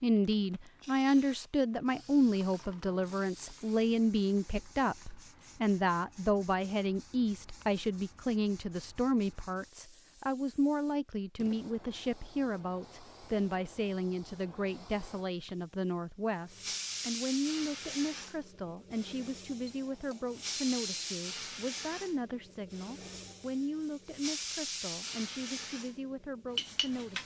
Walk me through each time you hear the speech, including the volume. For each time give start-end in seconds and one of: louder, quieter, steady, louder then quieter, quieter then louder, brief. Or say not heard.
0.0-27.2 quieter.